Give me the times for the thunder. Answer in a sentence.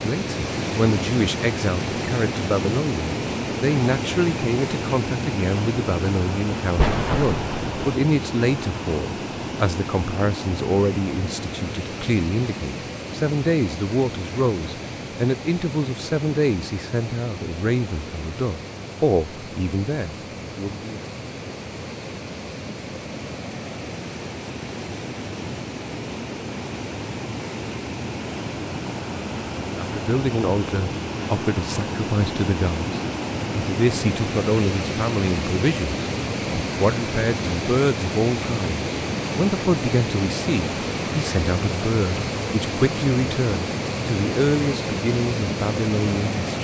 The thunder can be heard from 6.8 to 8.0 s.